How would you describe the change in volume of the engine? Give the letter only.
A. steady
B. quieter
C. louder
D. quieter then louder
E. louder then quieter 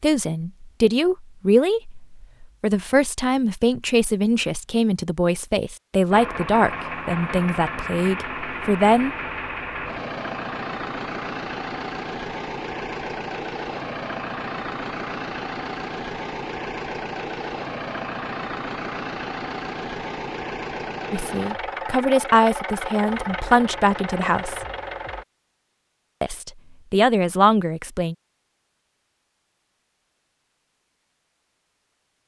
A.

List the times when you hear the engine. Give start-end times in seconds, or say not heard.
6.1-25.2.